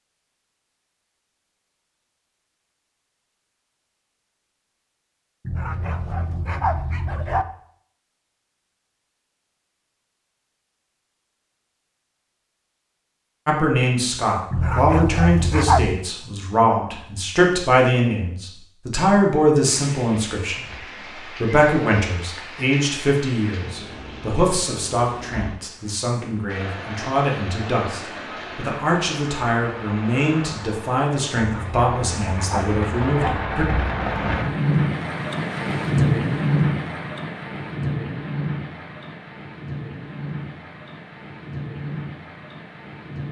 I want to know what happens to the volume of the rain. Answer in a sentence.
The volume of the rain goes up, then down.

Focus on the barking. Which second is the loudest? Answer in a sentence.
The loudest moment of the barking is at 16 seconds.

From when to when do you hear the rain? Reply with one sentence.
The rain can be heard from 19.6 to 43.2 s.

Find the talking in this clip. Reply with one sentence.
The talking can be heard from 13.4 to 33.6 s.